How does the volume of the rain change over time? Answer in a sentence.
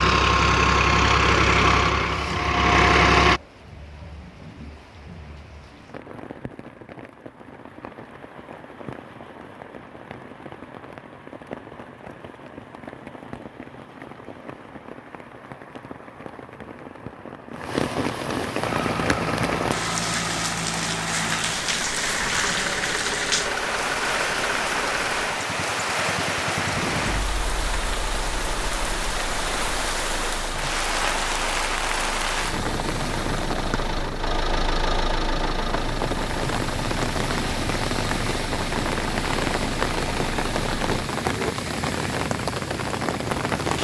The volume of the rain goes up.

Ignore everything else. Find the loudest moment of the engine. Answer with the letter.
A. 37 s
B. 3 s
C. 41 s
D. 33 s
B.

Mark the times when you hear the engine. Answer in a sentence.
You can hear the engine from 0.0 to 3.4 s and from 18.6 to 41.5 s.